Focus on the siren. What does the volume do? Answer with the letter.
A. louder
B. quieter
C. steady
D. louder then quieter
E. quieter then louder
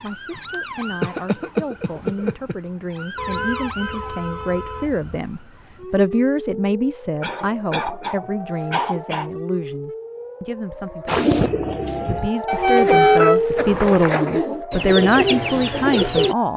A.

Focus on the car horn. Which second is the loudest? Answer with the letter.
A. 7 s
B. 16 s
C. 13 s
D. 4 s
C.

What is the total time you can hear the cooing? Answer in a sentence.
You can hear the cooing for 5 seconds altogether.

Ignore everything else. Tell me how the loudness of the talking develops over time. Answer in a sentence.
The loudness of the talking goes up.